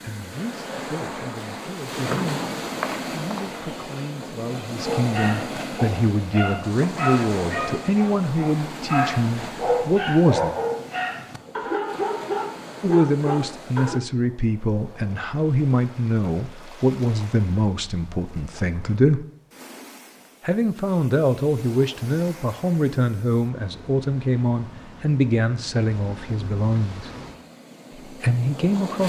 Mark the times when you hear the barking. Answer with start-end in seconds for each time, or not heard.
4.8-14.0.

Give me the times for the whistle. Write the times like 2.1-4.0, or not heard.
2.0-3.7.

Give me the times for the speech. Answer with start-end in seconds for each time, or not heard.
0.0-2.5, 3.1-10.5, 12.8-19.2, 20.4-27.1, 28.1-29.0.